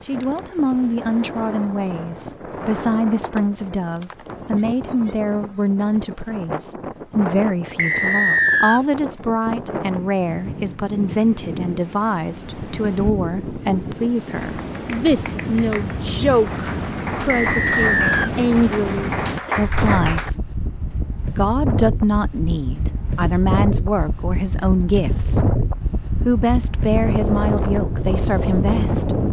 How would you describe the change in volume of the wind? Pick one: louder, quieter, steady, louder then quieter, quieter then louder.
louder.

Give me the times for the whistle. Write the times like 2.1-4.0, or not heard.
7.8-8.8, 17.2-18.3.